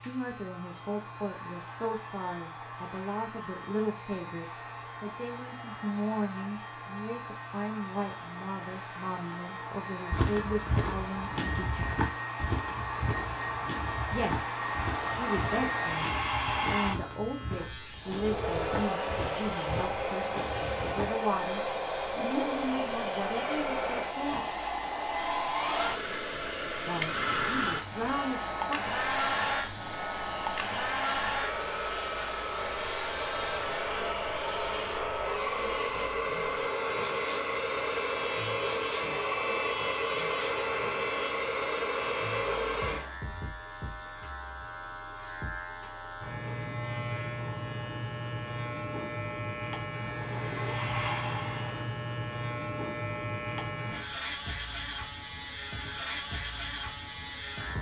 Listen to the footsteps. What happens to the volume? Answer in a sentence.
The volume of the footsteps goes down.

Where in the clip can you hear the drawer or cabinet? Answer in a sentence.
You can't hear the drawer or cabinet here.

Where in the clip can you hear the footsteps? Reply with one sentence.
The footsteps can be heard from 10.1 to 21.1 s.